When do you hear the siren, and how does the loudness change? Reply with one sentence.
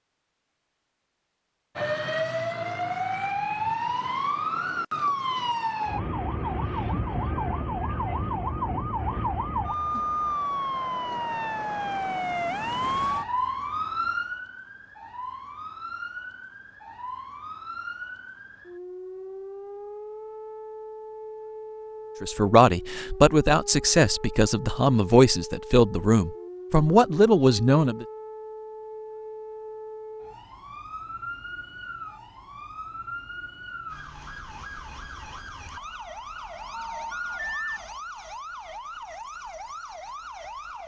The siren can be heard from 1.8 to 40.8 s, getting quieter.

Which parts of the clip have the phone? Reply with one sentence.
The phone can be heard from 36.7 to 37.8 s.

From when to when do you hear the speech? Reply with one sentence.
The speech can be heard from 22.2 to 28.1 s.